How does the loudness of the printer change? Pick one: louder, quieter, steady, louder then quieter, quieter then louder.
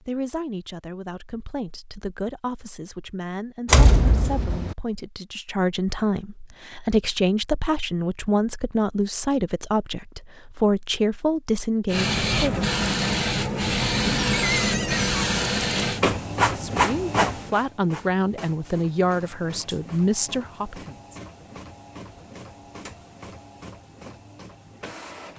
quieter.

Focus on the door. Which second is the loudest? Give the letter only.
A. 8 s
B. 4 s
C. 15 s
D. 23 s
B.